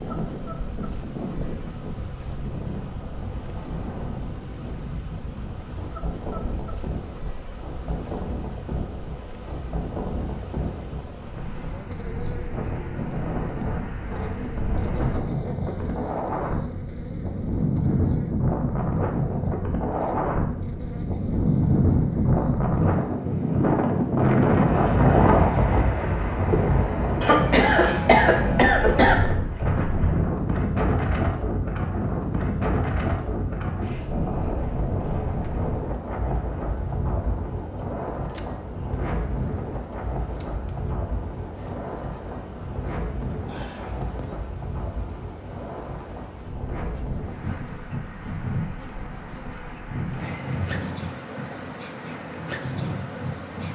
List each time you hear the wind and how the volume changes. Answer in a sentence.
The wind can be heard from 0.0 to 53.7 s, getting louder then quieter.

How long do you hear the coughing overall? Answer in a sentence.
The coughing can be heard for 2 seconds in total.